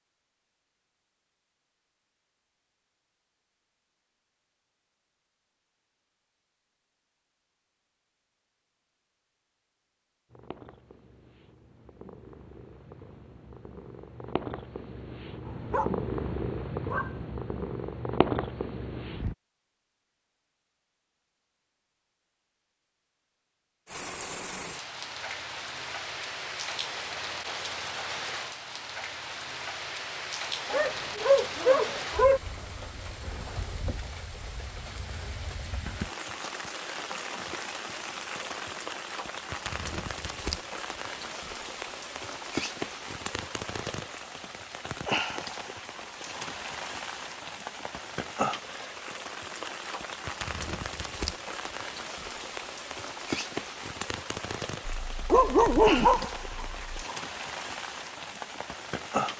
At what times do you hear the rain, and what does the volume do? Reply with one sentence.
The rain can be heard from 23.9 to 59.3 s, at a steady volume.